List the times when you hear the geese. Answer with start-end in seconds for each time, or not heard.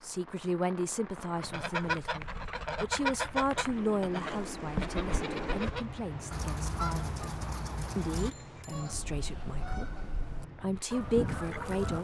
1.4-12.0.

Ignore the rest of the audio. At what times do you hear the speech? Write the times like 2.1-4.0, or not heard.
0.0-7.2, 8.0-12.0.